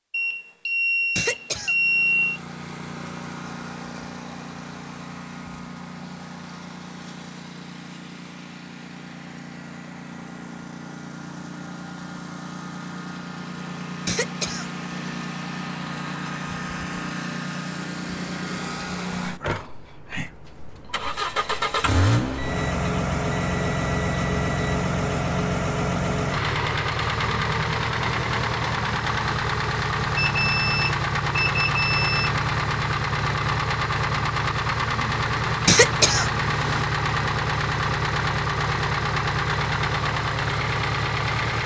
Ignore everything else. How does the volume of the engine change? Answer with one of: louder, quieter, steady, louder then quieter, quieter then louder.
louder.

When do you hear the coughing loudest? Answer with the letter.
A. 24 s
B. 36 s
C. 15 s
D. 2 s
B.